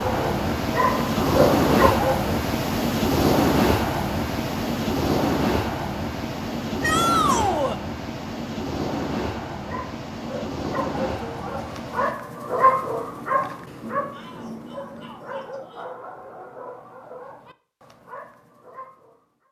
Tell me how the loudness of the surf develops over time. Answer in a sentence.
The loudness of the surf goes down.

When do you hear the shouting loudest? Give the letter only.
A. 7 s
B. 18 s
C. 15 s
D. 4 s
A.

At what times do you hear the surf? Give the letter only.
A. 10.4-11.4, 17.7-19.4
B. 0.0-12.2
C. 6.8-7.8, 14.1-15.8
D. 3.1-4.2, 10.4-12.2
B.